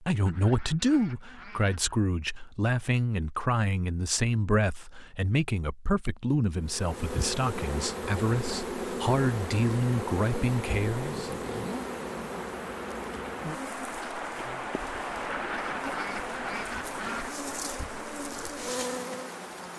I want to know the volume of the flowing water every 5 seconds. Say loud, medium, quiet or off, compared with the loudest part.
off, medium, loud, loud.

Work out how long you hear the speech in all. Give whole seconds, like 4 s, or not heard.
11 s.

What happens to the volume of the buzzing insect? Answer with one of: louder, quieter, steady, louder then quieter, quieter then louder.
quieter then louder.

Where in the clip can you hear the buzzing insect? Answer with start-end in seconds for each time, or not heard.
6.6-19.7.